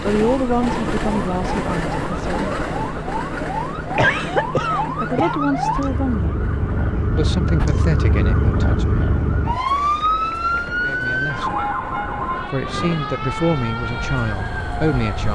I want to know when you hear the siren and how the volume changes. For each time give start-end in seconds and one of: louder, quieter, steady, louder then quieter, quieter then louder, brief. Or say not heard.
0.1-15.2 louder then quieter.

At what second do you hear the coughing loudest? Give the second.
4 s.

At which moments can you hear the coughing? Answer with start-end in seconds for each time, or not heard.
4.0-5.4.